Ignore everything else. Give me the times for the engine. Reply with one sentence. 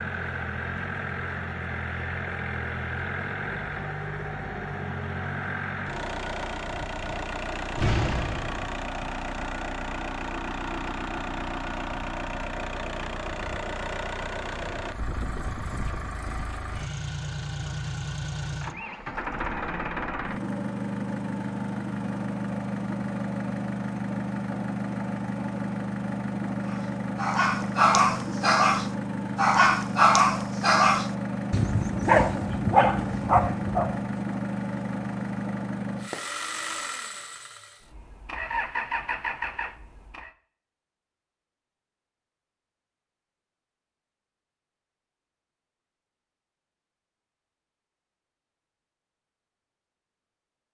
The engine can be heard from 0.0 to 40.3 s.